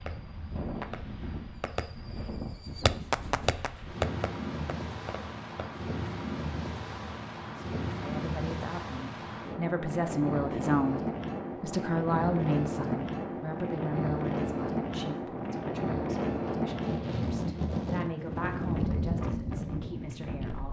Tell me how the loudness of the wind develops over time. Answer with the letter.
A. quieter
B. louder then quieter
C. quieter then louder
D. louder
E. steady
D.